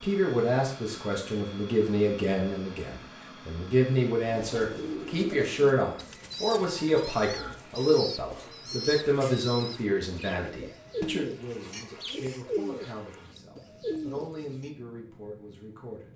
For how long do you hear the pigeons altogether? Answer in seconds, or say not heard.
10 s.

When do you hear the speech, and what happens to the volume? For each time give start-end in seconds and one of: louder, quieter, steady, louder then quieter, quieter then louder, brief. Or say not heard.
0.0-16.1 quieter.